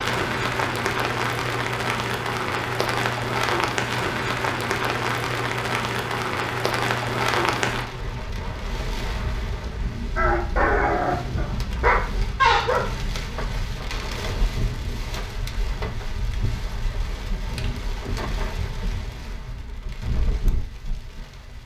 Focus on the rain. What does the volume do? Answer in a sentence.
The loudness of the rain goes down.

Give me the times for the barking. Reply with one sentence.
You can hear the barking from 10.2 to 12.9 s.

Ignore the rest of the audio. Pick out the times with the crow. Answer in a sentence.
The crow can't be heard in this clip.